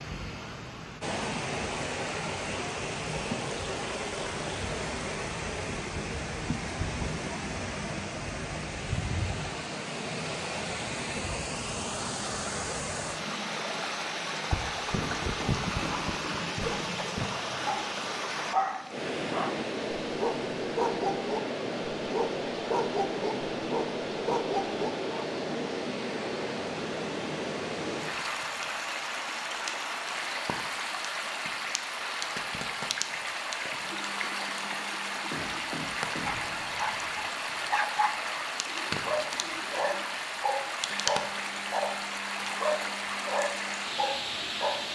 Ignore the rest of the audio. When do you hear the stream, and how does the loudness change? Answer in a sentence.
The stream can be heard from 0.0 to 44.8 s, at a steady volume.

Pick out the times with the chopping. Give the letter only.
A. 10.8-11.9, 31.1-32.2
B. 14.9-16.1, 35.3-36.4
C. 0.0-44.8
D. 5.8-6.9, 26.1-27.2
B.